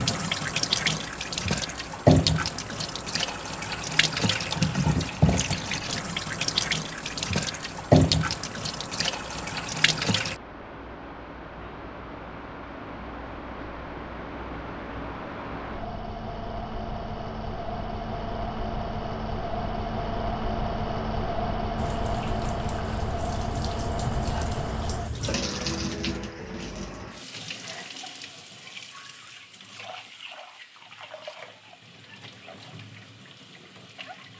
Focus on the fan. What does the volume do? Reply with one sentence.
The volume of the fan goes up.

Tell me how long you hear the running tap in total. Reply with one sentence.
You can hear the running tap for 23 seconds altogether.